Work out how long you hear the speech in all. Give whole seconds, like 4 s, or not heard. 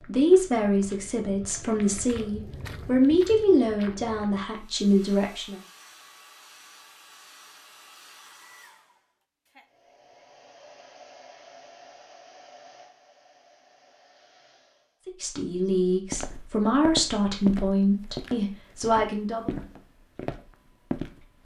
10 s.